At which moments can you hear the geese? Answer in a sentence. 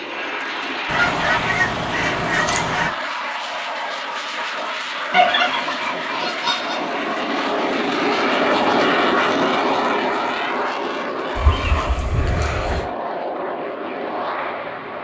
You can hear the geese from 0.8 to 2.9 s, from 5.1 to 6.8 s and from 11.3 to 12.8 s.